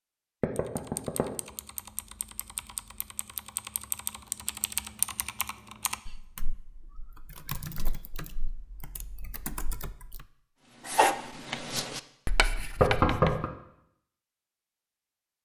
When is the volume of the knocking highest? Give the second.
13 s.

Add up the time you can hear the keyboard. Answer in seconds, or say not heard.
10 s.